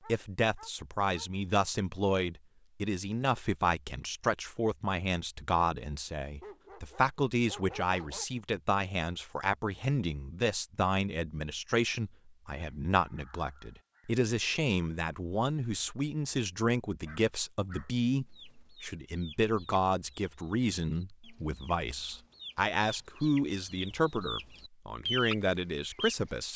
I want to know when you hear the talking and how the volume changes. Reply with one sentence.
You can hear the talking from 0.1 to 26.5 s, at a steady volume.